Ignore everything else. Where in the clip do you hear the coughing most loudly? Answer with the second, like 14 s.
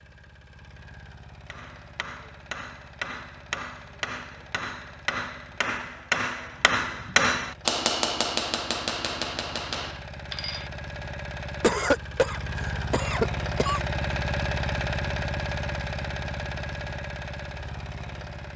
12 s.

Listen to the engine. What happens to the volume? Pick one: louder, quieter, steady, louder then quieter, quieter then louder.
louder.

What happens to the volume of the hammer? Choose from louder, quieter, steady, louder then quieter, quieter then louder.
louder then quieter.